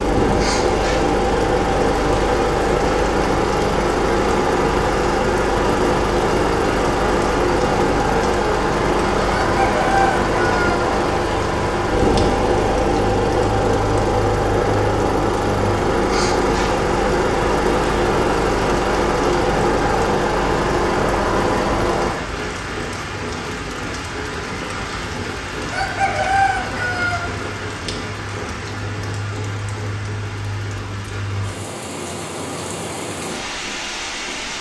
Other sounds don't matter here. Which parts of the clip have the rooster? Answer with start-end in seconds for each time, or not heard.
9.3-10.8, 25.7-27.2.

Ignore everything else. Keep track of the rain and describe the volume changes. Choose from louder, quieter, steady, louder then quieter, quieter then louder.
steady.